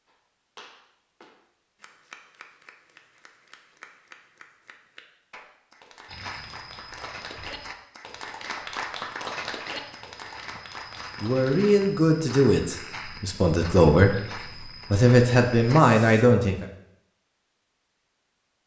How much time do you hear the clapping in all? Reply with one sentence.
The clapping can be heard for 12 seconds in total.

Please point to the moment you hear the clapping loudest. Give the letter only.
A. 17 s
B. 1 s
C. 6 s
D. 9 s
D.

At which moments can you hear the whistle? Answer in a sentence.
You can't hear the whistle here.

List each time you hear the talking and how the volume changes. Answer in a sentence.
The talking can be heard from 11.2 to 16.6 s, getting quieter then louder.